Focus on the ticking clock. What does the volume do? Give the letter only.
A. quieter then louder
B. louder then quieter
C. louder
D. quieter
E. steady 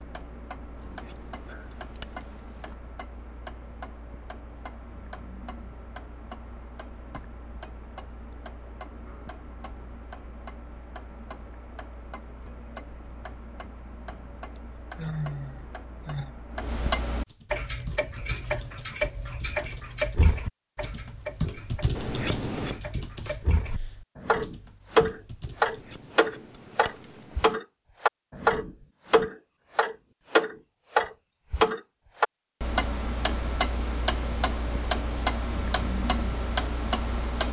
C.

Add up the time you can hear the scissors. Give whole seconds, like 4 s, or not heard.
5 s.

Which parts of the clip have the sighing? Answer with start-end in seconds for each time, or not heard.
14.9-16.4.